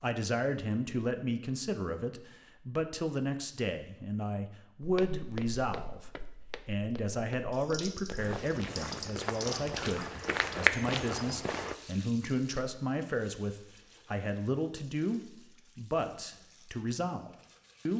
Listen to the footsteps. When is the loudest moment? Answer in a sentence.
The volume of the footsteps peaks at 11 seconds.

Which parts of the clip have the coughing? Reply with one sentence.
You can't hear the coughing here.